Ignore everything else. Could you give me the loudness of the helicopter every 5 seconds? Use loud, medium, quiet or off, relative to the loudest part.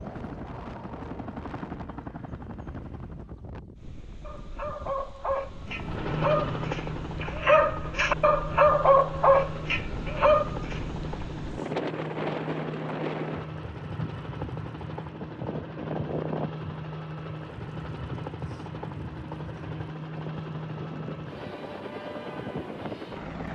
medium, loud, loud, loud, loud.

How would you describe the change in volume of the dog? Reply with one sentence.
The loudness of the dog goes up.